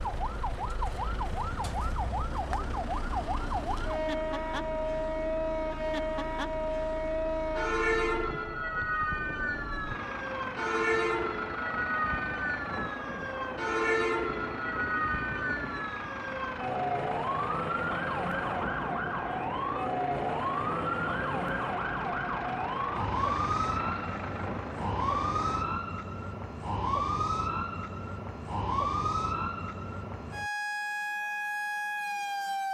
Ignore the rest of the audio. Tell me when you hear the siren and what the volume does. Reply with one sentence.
You can hear the siren from 0.0 to 32.6 s, at a steady volume.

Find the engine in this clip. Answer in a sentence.
You can hear the engine from 0.0 to 25.8 s.